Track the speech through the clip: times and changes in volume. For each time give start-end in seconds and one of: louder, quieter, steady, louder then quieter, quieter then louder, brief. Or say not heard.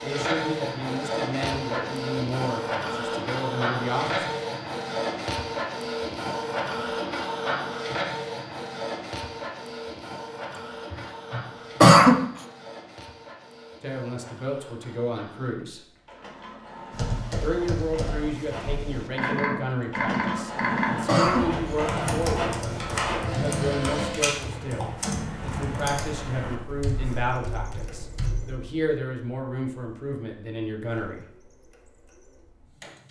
0.0-4.3 quieter then louder
13.8-15.8 brief
17.4-31.2 steady.